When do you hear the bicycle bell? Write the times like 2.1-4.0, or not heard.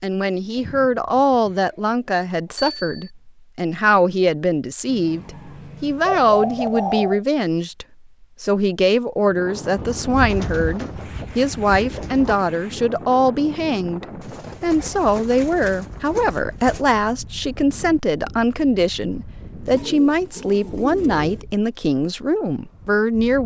2.5-3.1.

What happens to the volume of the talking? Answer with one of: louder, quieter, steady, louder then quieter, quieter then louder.
steady.